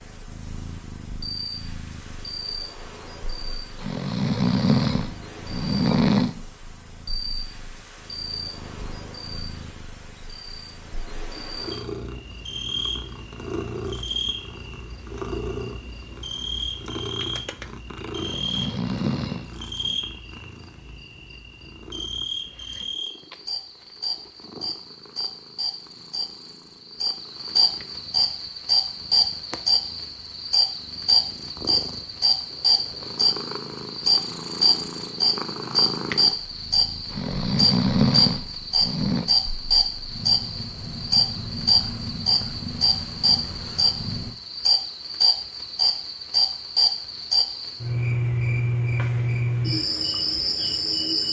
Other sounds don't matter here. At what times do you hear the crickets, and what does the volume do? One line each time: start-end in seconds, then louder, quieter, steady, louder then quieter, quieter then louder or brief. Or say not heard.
0.0-51.2 louder.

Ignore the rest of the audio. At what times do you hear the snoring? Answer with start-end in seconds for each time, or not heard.
3.8-6.3, 18.1-19.9, 37.1-39.2.